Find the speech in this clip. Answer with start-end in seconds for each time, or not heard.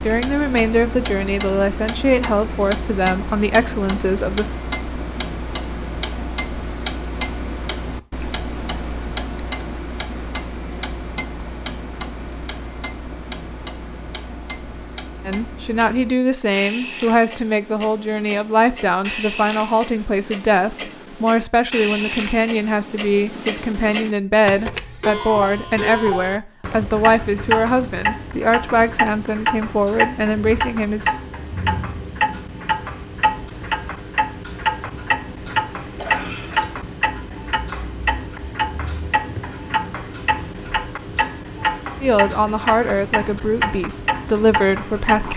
0.0-4.5, 15.2-31.1, 42.0-45.3.